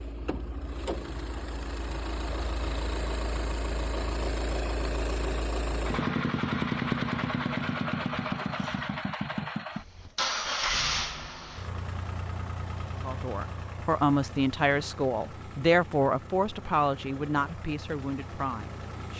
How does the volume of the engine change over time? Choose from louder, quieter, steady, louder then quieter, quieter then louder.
louder then quieter.